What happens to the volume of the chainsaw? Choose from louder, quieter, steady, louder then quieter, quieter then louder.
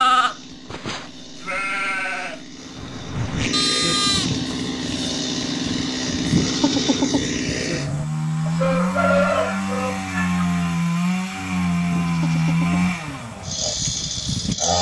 louder.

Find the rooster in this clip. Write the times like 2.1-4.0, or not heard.
8.4-10.4.